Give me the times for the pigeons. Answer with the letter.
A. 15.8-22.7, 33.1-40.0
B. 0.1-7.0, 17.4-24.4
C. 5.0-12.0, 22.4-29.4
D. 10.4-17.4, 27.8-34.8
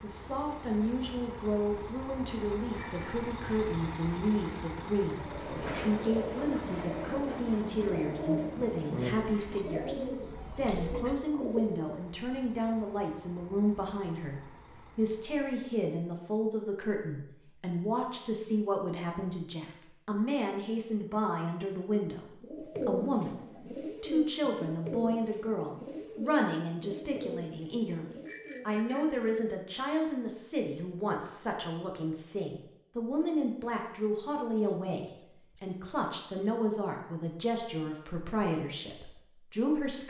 C.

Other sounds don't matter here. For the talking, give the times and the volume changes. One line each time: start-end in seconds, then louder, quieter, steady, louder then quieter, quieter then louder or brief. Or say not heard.
0.0-40.0 steady.